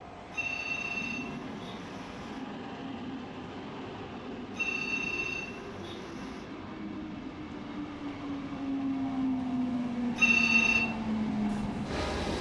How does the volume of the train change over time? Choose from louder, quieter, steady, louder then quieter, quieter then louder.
louder.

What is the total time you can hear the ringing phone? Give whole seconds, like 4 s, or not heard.
5 s.